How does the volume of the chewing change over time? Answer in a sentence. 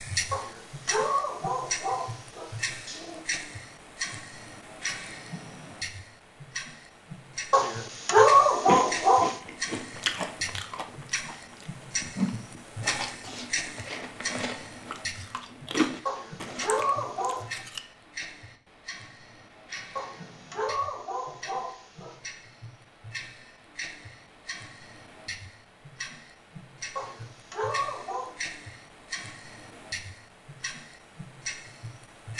The volume of the chewing goes down, then up.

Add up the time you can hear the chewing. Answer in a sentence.
You can hear the chewing for 9 seconds altogether.